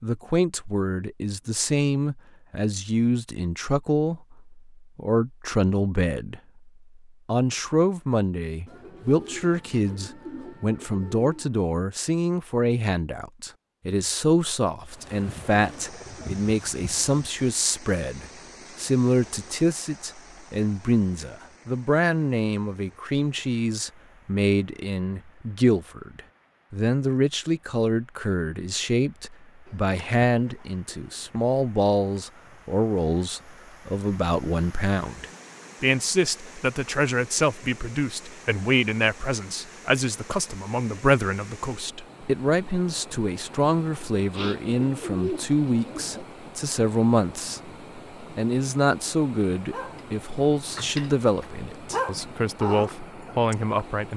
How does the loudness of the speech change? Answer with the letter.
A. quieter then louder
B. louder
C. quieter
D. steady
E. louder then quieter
D.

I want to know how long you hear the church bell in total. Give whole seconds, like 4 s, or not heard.
not heard.